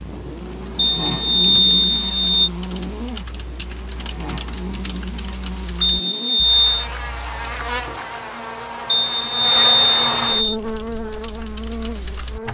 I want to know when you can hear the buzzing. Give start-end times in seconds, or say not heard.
0.0-12.5.